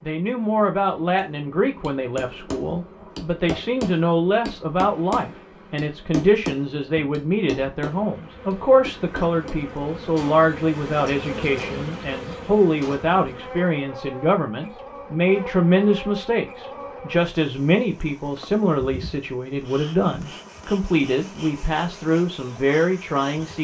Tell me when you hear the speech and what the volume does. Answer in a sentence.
You can hear the speech from 0.0 to 23.5 s, at a steady volume.